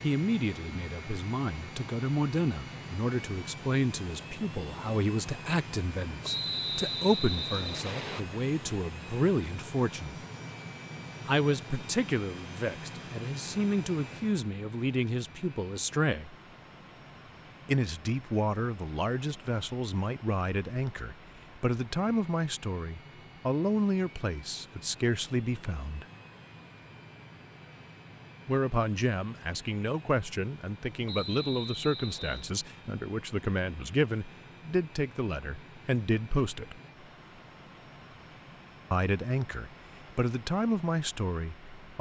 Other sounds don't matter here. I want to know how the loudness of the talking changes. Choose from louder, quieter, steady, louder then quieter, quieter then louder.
steady.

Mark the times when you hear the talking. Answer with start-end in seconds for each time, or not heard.
0.0-10.2, 11.2-16.4, 17.6-26.1, 28.4-36.8, 38.9-41.9.